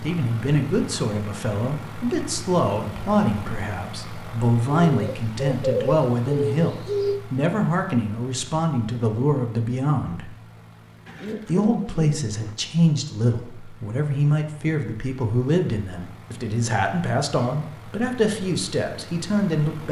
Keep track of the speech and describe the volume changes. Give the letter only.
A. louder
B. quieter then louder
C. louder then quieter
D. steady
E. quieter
D.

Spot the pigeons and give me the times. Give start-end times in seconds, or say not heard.
4.8-7.2, 11.1-12.6.